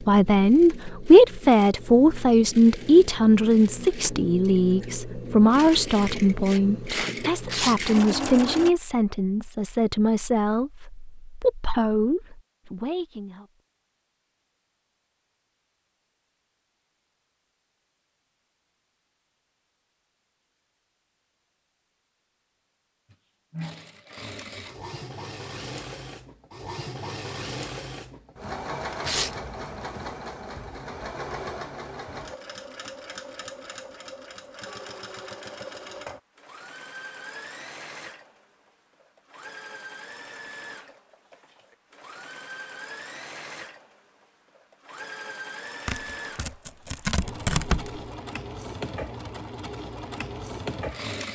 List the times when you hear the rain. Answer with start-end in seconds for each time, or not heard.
not heard.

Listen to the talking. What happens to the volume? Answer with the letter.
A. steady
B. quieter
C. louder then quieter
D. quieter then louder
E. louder
B.